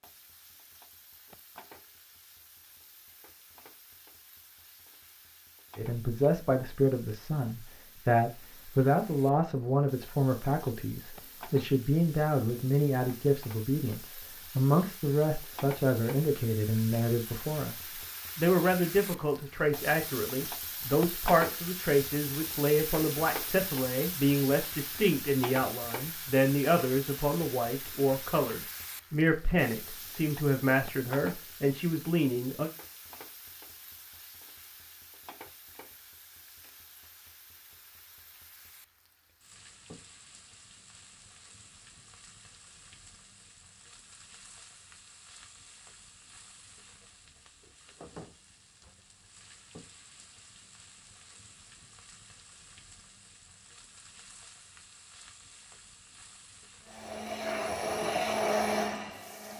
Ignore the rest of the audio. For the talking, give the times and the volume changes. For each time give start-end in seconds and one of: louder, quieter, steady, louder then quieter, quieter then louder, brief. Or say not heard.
5.8-32.7 steady.